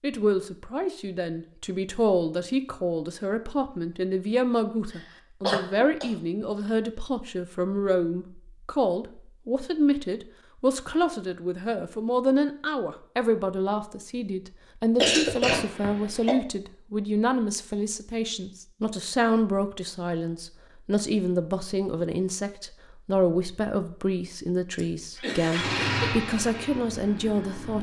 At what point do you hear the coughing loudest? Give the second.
15 s.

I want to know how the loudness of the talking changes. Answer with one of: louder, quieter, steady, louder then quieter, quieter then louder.
steady.